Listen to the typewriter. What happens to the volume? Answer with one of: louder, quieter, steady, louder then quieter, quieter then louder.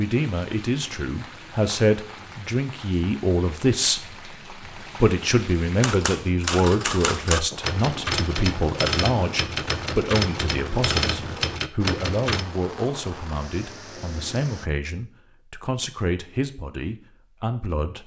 steady.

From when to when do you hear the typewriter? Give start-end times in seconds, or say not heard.
5.8-12.4.